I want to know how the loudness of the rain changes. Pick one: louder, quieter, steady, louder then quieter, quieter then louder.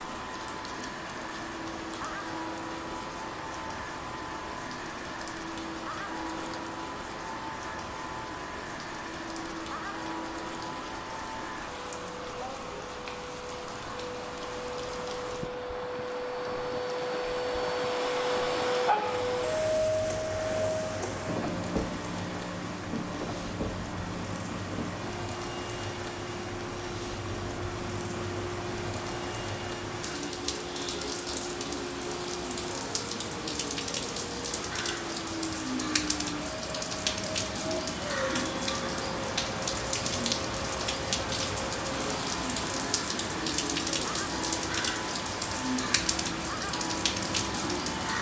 louder.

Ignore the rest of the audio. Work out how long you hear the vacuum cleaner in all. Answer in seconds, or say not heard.
48 s.